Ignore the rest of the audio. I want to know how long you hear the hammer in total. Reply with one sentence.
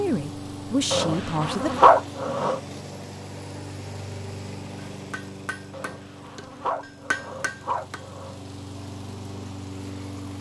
The hammer can be heard for 3 seconds in total.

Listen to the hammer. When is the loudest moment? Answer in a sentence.
The loudest moment of the hammer is at 7 seconds.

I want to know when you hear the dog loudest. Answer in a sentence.
The volume of the dog peaks at 2 seconds.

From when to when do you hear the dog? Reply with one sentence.
You can hear the dog from 0.9 to 2.6 s and from 5.7 to 8.4 s.